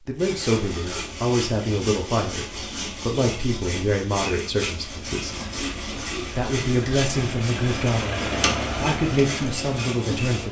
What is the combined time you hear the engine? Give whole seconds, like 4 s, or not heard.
5 s.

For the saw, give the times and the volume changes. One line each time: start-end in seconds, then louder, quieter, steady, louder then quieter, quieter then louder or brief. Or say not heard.
0.1-10.4 steady.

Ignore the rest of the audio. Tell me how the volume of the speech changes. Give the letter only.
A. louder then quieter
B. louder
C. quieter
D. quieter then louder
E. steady
E.